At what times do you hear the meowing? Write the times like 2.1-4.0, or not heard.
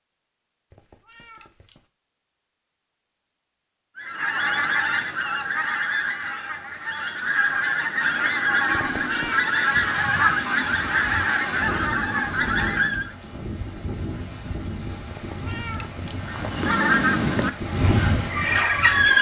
0.7-1.9, 8.8-9.5, 15.1-16.2.